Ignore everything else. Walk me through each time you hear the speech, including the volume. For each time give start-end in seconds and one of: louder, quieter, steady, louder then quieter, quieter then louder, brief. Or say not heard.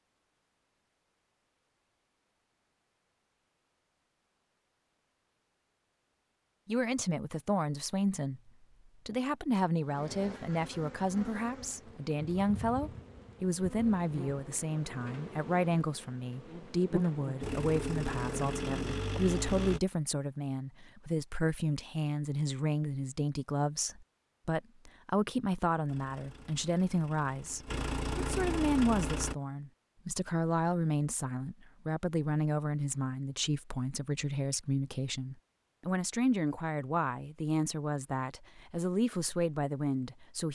6.7-40.5 steady.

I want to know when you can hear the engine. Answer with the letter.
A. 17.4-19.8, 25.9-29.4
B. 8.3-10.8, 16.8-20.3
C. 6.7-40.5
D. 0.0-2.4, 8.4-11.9
A.